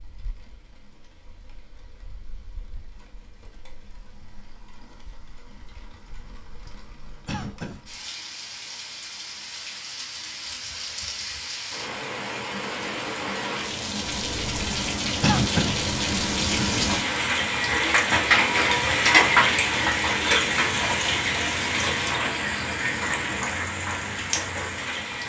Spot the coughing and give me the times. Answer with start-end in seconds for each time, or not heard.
7.2-7.8, 15.2-15.8.